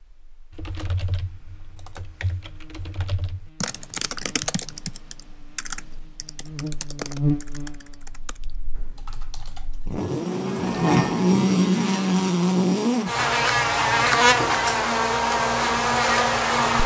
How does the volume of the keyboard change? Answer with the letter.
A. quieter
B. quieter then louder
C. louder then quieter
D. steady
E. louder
C.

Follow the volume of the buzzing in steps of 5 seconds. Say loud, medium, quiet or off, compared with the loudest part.
quiet, quiet, loud, loud.